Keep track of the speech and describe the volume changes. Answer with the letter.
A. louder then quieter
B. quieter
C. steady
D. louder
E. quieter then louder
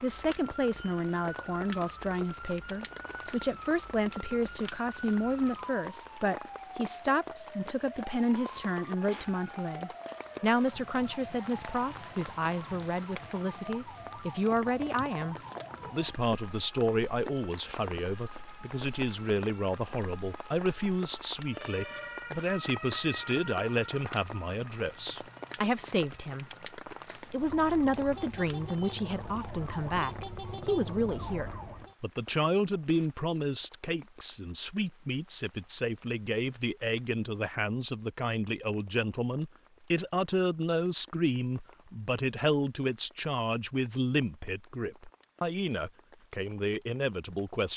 C.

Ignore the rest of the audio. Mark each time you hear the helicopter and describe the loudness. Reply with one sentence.
The helicopter can't be heard in this clip.